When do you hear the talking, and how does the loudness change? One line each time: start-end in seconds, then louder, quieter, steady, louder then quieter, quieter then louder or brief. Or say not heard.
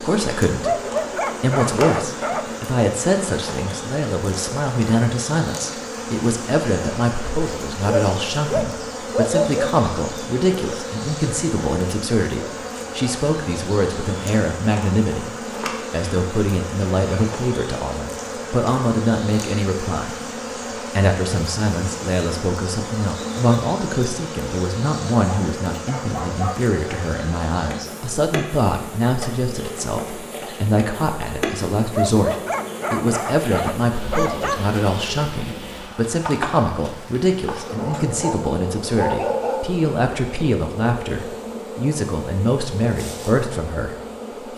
0.0-0.8 brief
1.4-20.1 steady
20.8-44.5 steady.